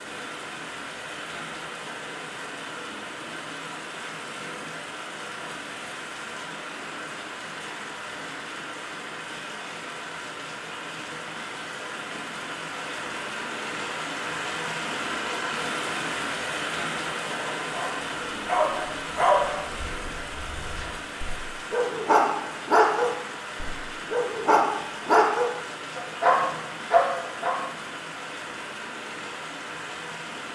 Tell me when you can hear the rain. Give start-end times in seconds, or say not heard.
0.0-30.5.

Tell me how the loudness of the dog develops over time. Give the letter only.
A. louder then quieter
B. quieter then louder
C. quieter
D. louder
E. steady
B.